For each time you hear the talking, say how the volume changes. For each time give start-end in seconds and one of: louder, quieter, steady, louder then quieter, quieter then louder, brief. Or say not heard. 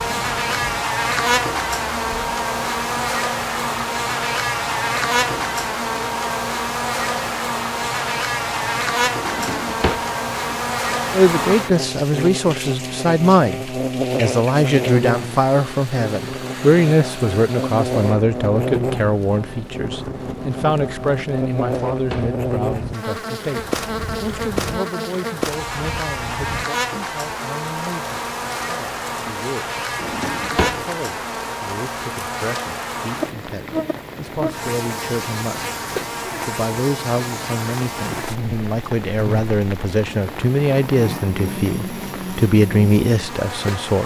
11.1-29.8 quieter
30.6-35.8 louder
36.5-44.0 louder.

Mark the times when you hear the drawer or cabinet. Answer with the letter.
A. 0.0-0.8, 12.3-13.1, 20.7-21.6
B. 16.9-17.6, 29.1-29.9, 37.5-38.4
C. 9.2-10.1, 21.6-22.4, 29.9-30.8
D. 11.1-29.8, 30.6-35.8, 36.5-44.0
C.